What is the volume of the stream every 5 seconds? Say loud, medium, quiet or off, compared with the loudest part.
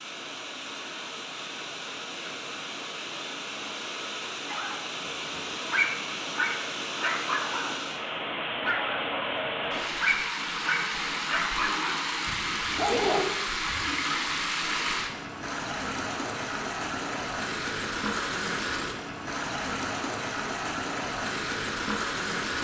medium, loud, loud, loud, loud.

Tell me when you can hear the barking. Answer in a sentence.
The barking can be heard from 4.5 to 7.8 s, from 8.6 to 12.1 s and from 12.8 to 13.2 s.